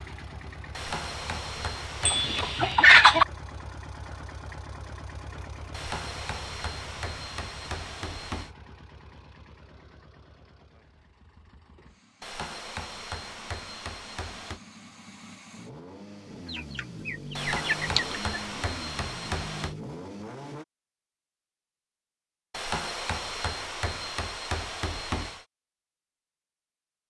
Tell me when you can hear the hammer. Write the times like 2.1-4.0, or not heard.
0.7-2.8, 5.7-8.5, 12.2-14.6, 17.4-19.8, 22.5-25.4.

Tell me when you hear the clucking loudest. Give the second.
3 s.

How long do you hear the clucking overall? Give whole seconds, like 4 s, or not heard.
3 s.